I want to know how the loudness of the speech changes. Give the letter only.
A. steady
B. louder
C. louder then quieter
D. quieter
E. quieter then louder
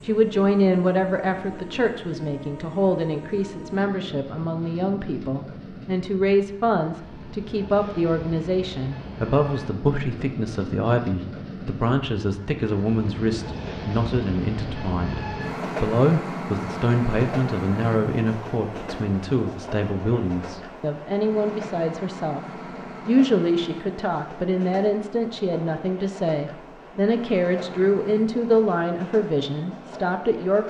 A.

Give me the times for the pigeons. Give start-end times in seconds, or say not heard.
not heard.